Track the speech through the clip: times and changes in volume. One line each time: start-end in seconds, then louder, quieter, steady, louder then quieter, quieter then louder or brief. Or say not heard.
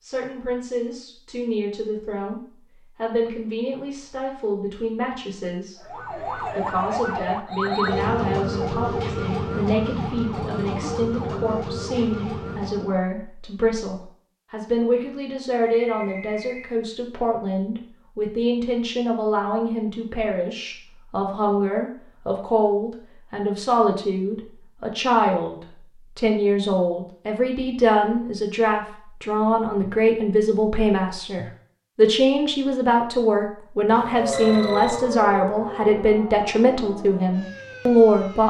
0.0-38.4 louder.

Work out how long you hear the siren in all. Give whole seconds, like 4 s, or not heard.
12 s.